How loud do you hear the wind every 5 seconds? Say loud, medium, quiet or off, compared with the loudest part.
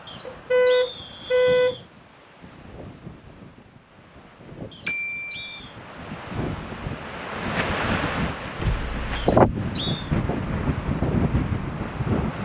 quiet, loud, loud.